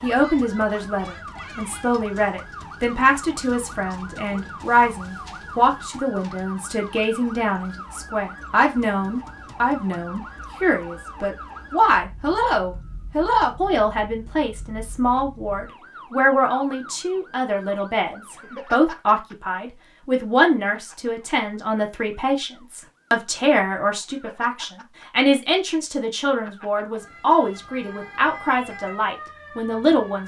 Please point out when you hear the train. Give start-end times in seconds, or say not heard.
not heard.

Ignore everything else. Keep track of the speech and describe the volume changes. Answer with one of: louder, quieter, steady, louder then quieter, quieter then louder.
steady.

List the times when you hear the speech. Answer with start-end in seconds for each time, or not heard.
0.0-30.2.